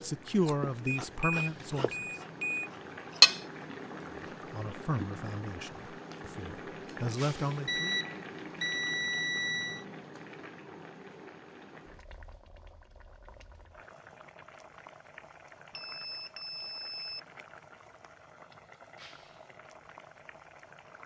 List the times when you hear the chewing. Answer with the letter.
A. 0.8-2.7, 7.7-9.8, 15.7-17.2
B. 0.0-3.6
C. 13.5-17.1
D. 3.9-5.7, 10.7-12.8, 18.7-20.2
B.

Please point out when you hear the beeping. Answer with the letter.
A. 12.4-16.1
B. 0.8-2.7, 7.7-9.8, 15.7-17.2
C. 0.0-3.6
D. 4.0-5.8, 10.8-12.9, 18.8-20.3
B.